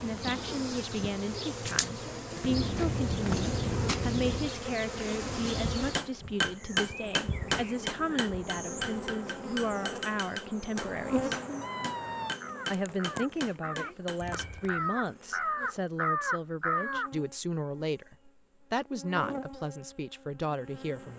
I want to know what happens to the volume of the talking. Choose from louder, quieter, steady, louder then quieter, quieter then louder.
steady.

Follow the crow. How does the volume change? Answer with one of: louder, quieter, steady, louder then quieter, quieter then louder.
louder.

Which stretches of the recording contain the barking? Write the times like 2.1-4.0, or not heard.
not heard.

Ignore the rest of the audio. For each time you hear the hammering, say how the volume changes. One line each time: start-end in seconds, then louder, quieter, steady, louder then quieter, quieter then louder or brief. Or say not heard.
6.0-14.5 quieter.